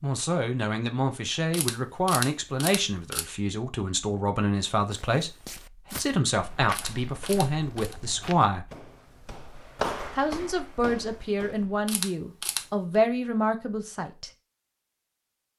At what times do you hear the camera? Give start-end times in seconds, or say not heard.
1.5-3.2, 6.7-8.0, 11.8-12.7.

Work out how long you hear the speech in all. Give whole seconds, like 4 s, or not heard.
13 s.